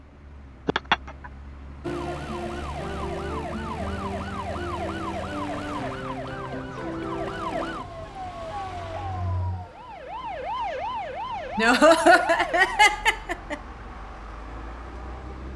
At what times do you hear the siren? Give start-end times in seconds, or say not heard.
1.8-12.9.